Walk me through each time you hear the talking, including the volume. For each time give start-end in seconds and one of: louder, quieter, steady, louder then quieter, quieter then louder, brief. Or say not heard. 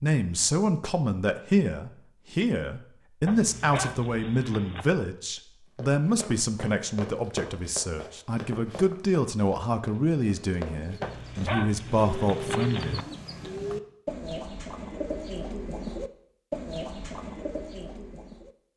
0.0-13.1 steady.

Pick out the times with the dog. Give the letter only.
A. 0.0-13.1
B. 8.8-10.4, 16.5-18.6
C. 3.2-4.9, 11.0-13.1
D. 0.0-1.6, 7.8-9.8
C.